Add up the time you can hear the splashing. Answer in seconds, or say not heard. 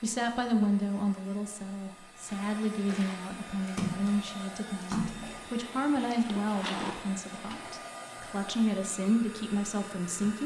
5 s.